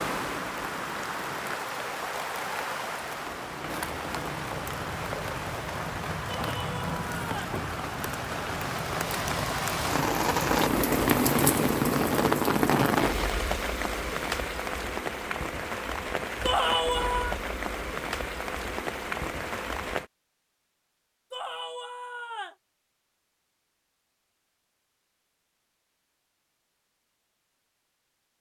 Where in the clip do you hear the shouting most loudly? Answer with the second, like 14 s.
17 s.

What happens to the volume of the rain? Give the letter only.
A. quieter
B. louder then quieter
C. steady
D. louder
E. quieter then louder
B.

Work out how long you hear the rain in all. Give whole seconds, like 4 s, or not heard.
20 s.